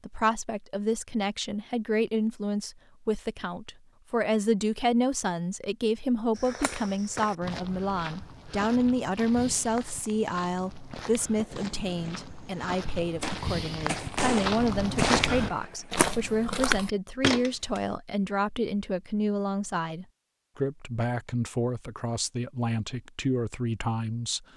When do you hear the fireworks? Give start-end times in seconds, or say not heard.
10.9-16.1.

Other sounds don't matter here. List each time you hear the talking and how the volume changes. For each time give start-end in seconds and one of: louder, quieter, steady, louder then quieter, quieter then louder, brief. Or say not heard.
0.0-24.4 steady.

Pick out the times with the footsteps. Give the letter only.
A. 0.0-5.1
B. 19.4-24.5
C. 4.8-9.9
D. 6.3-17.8
D.